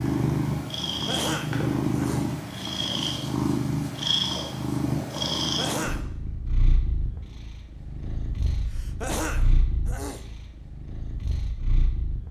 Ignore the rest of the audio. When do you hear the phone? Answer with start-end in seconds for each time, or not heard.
not heard.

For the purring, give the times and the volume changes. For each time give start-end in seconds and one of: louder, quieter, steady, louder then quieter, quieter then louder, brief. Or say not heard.
0.0-12.2 quieter.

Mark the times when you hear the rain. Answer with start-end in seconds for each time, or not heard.
not heard.